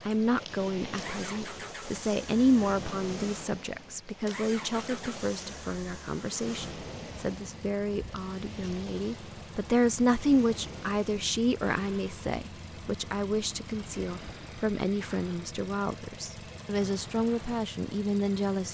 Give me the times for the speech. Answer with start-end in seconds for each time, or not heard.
0.1-18.6.